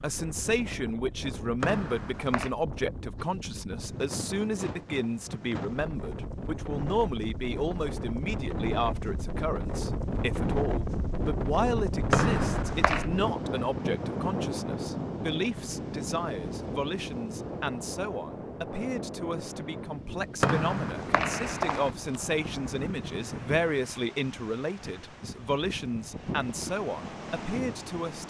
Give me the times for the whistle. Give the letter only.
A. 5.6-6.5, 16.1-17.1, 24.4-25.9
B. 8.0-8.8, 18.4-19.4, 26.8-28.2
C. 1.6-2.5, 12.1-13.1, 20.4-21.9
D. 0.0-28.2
C.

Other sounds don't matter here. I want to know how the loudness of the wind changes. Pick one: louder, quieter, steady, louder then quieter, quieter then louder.
louder then quieter.